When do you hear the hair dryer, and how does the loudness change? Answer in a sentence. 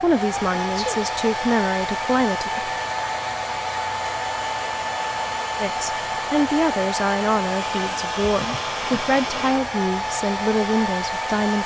The hair dryer can be heard from 0.0 to 11.6 s, at a steady volume.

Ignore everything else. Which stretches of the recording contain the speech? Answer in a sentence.
You can hear the speech from 0.0 to 2.7 s and from 5.6 to 11.6 s.